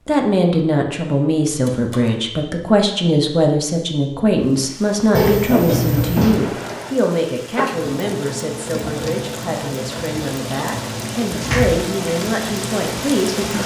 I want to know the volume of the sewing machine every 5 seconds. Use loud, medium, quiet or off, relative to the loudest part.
off, loud, loud.